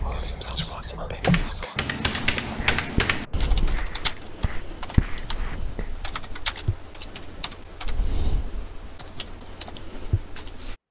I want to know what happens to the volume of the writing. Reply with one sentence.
The volume of the writing goes down, then up.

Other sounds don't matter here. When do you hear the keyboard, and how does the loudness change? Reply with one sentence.
The keyboard can be heard from 1.2 to 10.8 s, getting quieter.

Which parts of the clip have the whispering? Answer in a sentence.
The whispering can be heard from 0.0 to 2.6 s.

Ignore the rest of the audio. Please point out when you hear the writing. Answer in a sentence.
You can hear the writing from 0.0 to 5.9 s.